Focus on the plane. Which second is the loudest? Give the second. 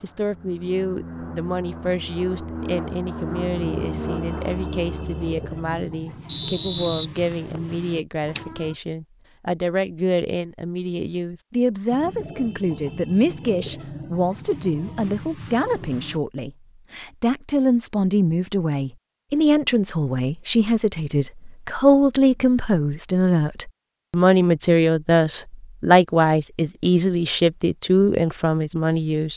4 s.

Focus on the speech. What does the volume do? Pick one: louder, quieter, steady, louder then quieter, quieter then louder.
louder.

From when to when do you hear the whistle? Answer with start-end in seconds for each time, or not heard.
6.2-7.8.